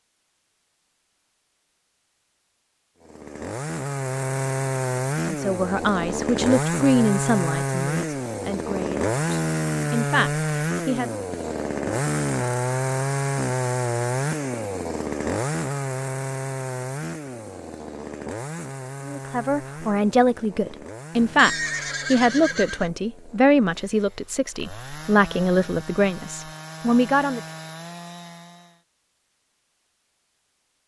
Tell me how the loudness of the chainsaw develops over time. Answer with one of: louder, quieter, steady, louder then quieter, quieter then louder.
quieter.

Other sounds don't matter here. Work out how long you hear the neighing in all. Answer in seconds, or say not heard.
2 s.